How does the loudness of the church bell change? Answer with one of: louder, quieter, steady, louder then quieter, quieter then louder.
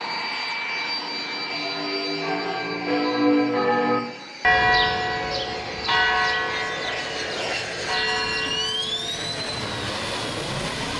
louder then quieter.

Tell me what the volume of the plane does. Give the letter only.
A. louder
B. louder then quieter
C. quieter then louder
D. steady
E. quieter
C.